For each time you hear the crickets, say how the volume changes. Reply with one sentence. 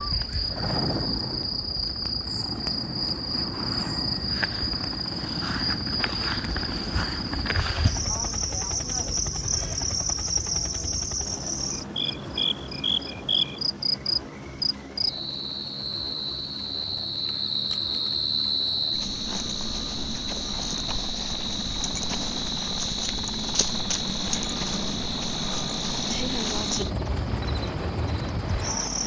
The crickets can be heard from 0.0 to 29.0 s, at a steady volume.